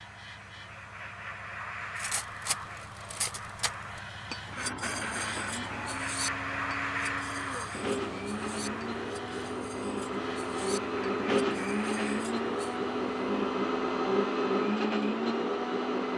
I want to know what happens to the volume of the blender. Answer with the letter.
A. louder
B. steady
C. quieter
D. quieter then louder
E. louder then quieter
A.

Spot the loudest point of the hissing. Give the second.
7 s.